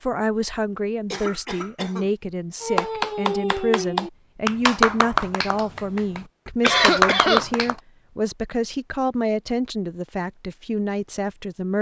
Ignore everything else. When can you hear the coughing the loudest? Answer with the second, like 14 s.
7 s.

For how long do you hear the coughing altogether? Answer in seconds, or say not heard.
2 s.